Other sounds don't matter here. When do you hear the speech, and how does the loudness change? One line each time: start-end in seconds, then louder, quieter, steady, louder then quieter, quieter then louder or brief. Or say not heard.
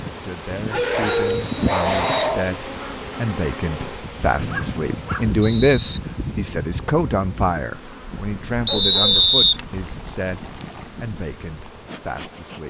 0.1-12.6 louder then quieter.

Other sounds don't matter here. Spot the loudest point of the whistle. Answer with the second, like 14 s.
9 s.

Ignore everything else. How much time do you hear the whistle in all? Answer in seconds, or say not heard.
4 s.